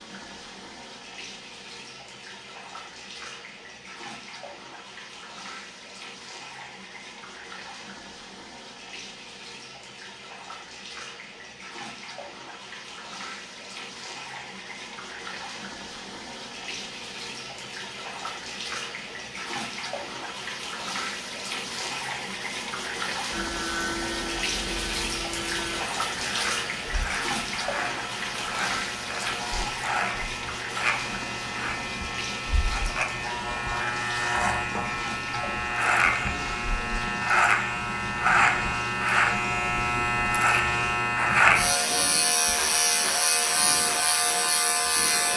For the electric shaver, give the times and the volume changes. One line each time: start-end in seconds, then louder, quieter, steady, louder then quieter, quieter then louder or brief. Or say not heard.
23.3-45.3 louder.